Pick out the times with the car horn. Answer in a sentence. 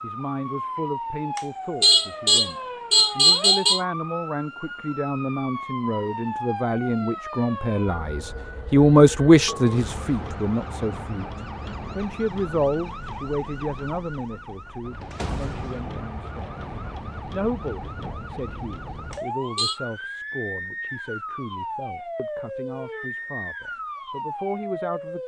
You can hear the car horn from 1.4 to 3.8 s and from 19.1 to 19.8 s.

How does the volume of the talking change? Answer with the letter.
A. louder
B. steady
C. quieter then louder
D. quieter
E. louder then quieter
E.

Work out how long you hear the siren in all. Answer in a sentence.
The siren can be heard for 25 seconds in total.